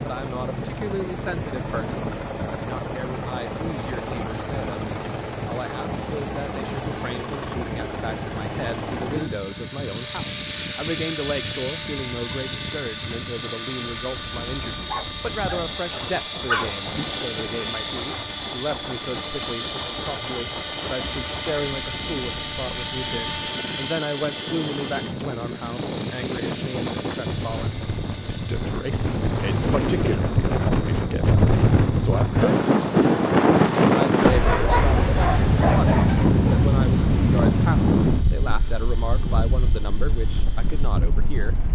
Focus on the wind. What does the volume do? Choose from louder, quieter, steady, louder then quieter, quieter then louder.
louder.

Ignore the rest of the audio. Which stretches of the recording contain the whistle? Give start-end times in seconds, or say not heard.
not heard.